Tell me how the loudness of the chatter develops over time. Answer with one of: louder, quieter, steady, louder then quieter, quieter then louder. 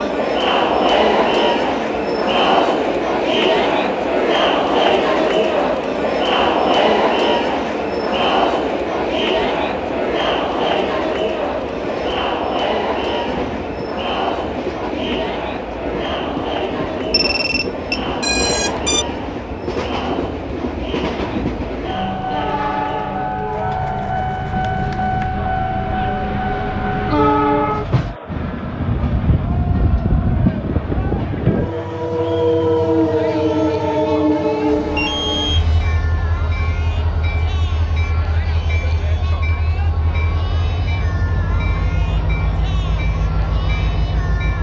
quieter.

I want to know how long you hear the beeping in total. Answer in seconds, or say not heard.
3 s.